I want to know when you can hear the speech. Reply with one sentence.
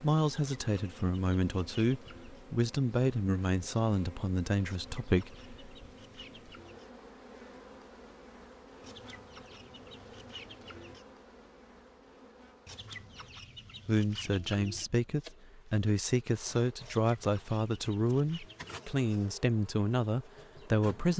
The speech can be heard from 0.0 to 5.5 s and from 13.8 to 21.1 s.